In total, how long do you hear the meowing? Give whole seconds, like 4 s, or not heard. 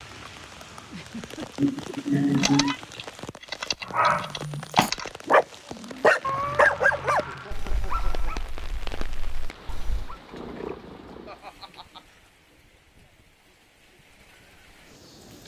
4 s.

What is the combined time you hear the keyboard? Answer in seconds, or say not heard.
3 s.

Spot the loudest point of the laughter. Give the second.
1 s.